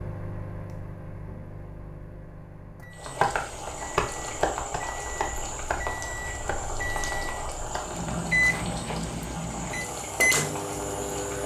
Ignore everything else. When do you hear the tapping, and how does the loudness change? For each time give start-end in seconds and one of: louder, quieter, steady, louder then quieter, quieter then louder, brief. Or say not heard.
3.0-8.3 quieter.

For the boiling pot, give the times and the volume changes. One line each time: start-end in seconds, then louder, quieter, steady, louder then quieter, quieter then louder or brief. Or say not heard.
2.9-11.4 steady.